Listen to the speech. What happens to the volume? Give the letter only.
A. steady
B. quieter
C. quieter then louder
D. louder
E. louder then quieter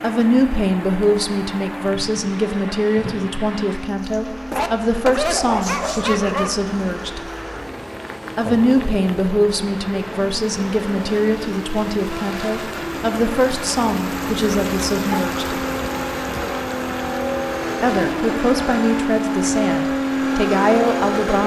A.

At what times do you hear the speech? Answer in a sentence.
The speech can be heard from 0.0 to 7.2 s, from 8.3 to 15.6 s and from 17.8 to 21.4 s.